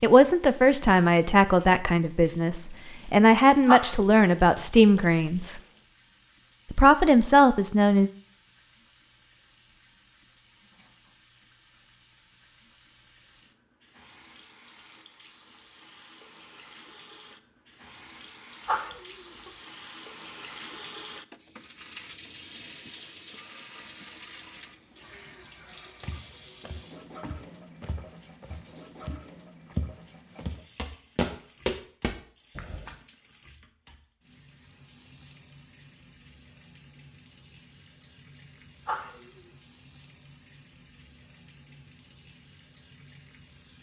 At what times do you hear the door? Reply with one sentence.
You can't hear the door here.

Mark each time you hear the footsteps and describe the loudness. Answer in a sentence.
You can hear the footsteps from 26.0 to 33.0 s, getting louder.